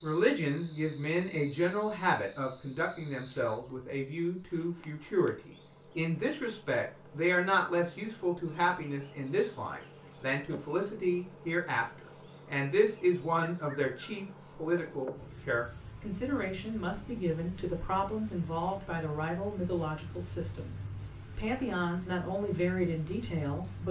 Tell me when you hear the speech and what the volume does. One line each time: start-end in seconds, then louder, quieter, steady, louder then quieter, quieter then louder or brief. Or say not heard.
0.0-23.8 steady.